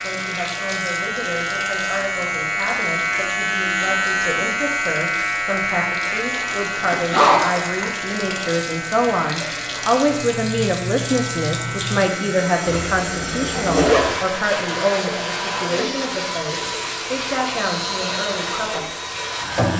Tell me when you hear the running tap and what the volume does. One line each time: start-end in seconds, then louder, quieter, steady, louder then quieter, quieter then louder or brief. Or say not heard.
0.0-19.7 louder.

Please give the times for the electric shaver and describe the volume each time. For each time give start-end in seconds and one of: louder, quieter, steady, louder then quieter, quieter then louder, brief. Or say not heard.
0.0-19.7 quieter.